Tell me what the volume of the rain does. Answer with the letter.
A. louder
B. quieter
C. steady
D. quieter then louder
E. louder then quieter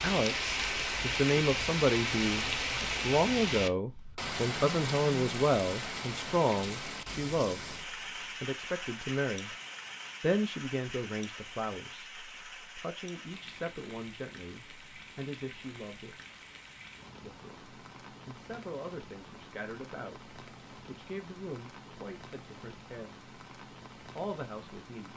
B.